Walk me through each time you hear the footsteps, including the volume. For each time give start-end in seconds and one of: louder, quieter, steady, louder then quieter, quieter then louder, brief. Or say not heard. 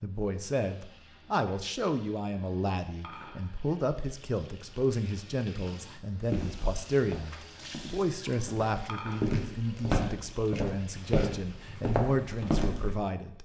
6.3-13.0 quieter then louder.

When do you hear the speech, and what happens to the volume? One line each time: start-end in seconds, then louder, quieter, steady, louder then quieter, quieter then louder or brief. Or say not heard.
0.0-13.4 steady.